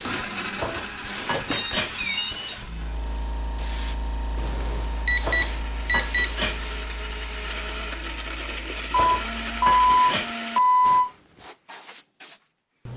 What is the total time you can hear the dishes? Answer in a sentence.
The dishes can be heard for 4 seconds in total.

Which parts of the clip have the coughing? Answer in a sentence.
The coughing can't be heard in this clip.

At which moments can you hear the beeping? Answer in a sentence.
You can hear the beeping from 1.3 to 2.6 s, from 4.3 to 6.3 s and from 8.9 to 11.1 s.